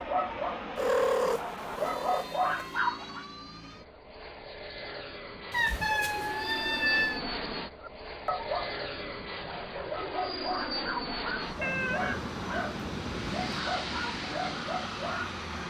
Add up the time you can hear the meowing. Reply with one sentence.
You can hear the meowing for 6 seconds altogether.